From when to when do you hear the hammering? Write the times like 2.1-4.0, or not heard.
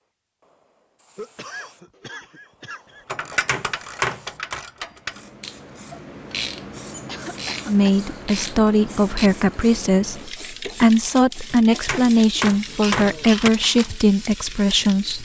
3.1-4.6, 11.5-13.5.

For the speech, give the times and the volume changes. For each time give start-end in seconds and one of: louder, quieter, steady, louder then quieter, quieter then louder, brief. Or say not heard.
7.7-15.1 steady.